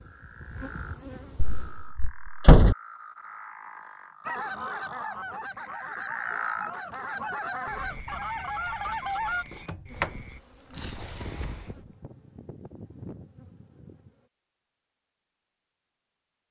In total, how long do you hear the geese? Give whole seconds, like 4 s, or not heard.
5 s.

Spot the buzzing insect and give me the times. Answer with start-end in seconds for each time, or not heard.
0.0-1.9, 9.9-14.3.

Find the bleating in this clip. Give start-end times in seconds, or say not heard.
not heard.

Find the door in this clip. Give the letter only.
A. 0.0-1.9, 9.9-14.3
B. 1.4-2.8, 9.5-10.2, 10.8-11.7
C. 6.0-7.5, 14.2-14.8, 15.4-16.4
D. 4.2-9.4
B.